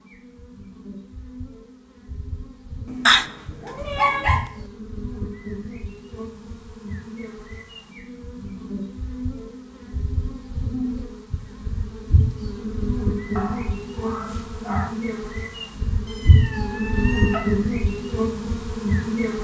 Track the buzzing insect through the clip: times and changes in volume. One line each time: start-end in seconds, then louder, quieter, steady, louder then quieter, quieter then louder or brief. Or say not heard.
0.0-19.3 louder.